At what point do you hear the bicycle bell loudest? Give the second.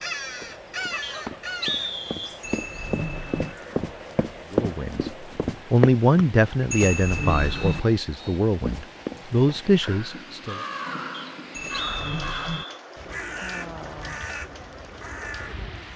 7 s.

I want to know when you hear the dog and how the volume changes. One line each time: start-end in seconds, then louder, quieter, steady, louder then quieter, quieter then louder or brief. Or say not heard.
not heard.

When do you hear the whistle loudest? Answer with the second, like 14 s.
2 s.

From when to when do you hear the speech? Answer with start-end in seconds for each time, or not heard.
4.5-10.6.